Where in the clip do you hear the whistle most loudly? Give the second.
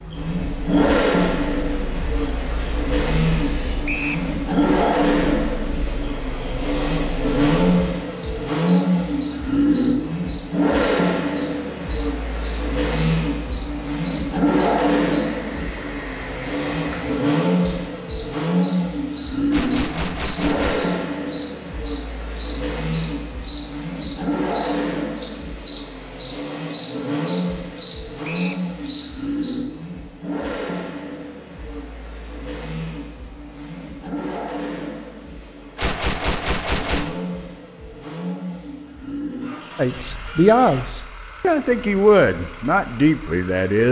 4 s.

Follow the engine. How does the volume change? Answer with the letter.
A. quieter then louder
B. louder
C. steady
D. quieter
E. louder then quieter
D.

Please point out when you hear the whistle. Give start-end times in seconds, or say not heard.
3.9-4.3, 28.2-28.6.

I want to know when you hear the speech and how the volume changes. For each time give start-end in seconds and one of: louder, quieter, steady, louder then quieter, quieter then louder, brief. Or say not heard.
39.8-43.8 quieter then louder.